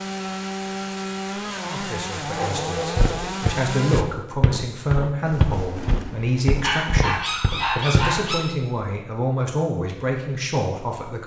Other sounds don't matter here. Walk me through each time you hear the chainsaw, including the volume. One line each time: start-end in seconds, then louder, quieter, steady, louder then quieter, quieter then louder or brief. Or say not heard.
0.0-4.0 steady.